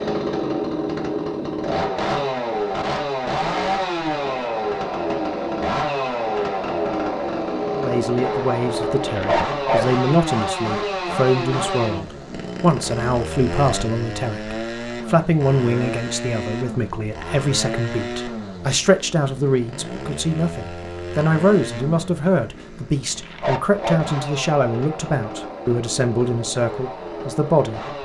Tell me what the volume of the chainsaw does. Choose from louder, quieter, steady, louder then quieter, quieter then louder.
quieter.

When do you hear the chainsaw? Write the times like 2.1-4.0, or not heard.
0.0-28.0.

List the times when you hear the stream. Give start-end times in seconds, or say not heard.
not heard.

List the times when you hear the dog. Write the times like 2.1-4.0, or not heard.
9.0-9.9, 23.1-24.1.